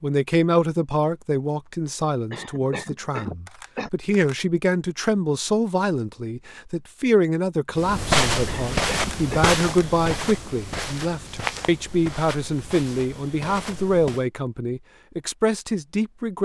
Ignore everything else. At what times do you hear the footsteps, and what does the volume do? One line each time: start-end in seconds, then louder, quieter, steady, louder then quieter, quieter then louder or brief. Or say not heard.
7.8-14.2 quieter.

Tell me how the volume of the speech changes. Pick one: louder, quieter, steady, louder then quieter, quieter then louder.
steady.